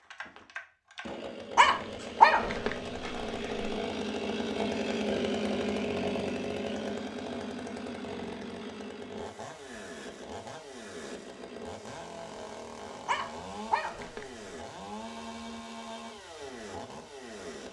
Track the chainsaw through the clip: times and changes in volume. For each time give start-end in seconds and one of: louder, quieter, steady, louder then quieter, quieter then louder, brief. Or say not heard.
0.0-17.6 louder then quieter.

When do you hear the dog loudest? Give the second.
2 s.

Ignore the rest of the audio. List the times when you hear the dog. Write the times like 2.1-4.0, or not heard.
1.6-3.8, 13.1-14.2.